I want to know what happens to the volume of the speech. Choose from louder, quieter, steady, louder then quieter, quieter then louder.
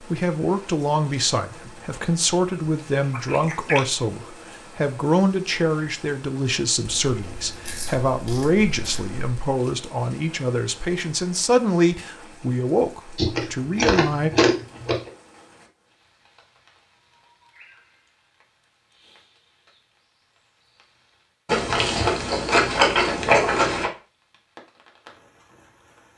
steady.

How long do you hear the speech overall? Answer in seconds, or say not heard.
14 s.